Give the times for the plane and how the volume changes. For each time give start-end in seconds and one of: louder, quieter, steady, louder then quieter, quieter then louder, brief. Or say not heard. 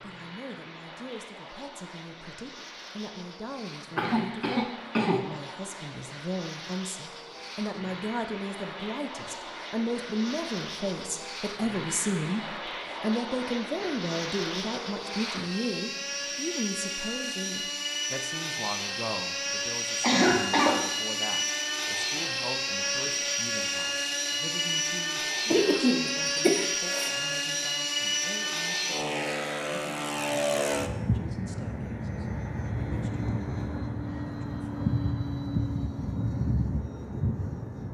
0.0-37.8 louder.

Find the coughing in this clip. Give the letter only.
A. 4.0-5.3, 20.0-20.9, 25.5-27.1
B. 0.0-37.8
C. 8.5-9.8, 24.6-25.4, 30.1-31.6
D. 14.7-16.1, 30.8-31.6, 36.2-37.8
A.